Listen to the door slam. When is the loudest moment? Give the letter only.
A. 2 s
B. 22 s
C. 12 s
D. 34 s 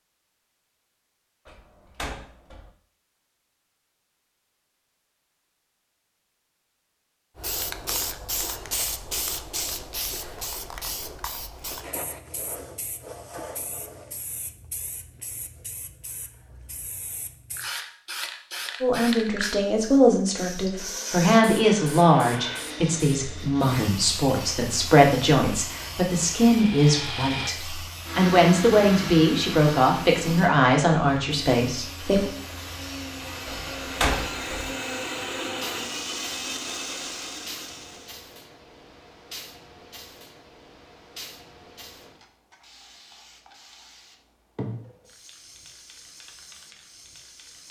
D.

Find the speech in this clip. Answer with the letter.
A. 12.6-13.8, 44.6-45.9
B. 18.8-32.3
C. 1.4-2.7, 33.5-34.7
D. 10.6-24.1
B.